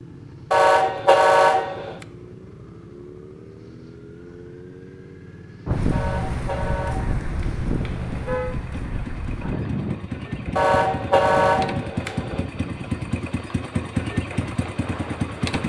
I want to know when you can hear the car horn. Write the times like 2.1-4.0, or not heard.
0.5-2.0, 5.9-8.6, 10.6-12.4.